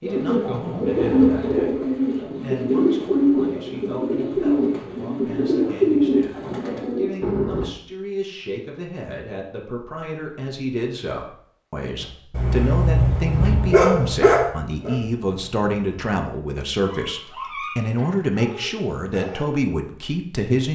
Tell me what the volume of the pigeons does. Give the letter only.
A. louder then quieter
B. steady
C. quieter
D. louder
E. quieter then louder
B.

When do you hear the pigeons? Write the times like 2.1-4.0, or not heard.
0.0-7.7.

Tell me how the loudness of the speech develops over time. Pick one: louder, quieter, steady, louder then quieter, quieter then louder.
louder.